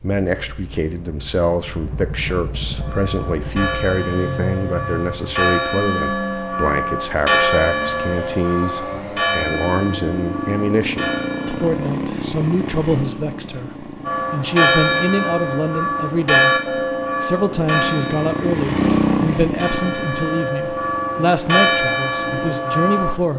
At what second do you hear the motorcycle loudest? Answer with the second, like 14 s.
19 s.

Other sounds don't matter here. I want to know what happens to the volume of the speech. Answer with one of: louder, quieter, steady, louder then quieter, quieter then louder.
steady.